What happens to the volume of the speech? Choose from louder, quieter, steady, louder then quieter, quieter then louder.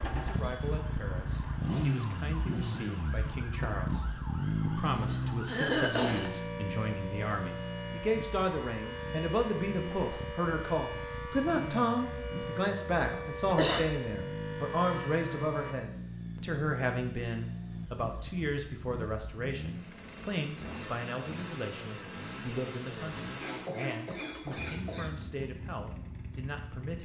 louder then quieter.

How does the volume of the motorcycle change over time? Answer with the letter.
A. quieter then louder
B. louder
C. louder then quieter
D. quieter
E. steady
D.